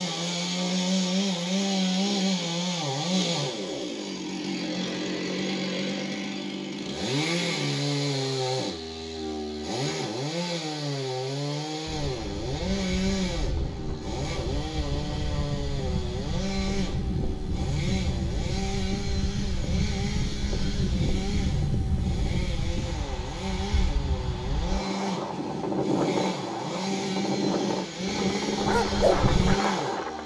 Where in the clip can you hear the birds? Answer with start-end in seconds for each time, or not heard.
not heard.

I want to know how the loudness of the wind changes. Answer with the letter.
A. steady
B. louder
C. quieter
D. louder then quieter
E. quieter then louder
B.